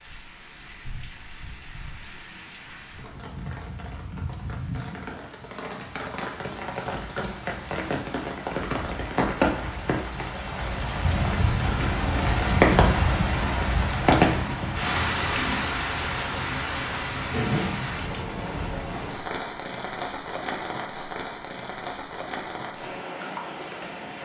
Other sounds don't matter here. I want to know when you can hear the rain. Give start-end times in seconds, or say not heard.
0.0-24.1.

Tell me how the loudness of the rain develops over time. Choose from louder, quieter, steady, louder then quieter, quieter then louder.
louder then quieter.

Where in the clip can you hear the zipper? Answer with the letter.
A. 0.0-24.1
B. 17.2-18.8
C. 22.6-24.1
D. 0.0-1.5
B.